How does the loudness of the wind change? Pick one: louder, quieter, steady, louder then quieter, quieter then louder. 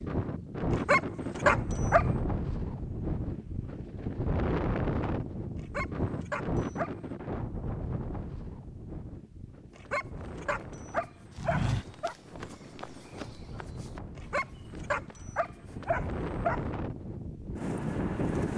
quieter then louder.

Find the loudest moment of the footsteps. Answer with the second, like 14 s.
12 s.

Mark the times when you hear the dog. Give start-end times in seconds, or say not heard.
0.7-2.0, 5.5-7.0, 9.8-12.2, 14.2-16.6.